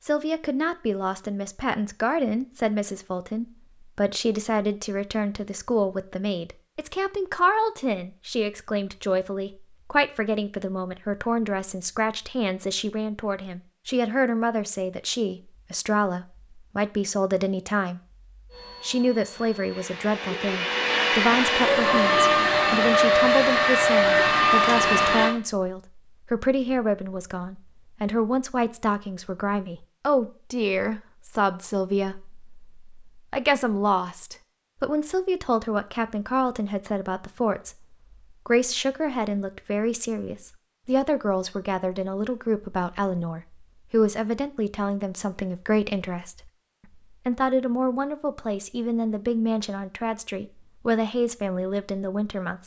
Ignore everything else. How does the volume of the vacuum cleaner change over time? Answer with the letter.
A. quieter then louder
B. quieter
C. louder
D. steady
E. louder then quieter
C.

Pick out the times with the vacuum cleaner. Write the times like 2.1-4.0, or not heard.
18.5-25.4.